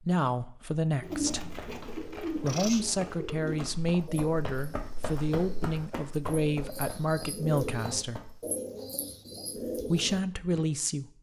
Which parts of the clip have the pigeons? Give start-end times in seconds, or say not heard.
1.0-10.7.